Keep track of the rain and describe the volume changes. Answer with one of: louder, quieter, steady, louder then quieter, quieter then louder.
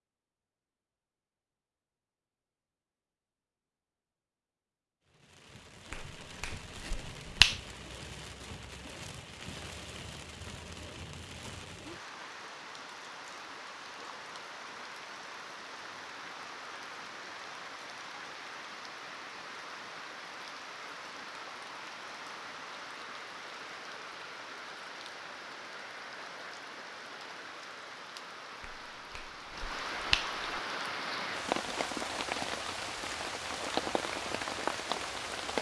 louder.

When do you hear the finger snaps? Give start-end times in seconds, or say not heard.
5.9-7.6, 28.6-30.4.